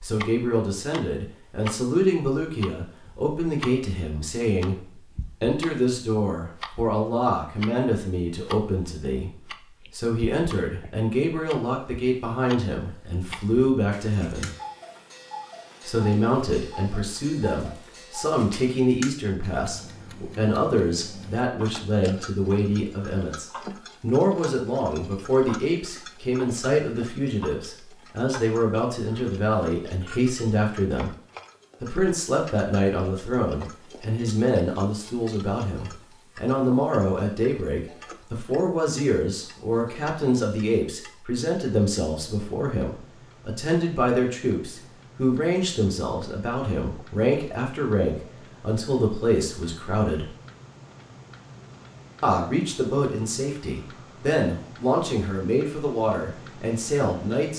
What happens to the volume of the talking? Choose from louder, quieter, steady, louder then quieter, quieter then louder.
steady.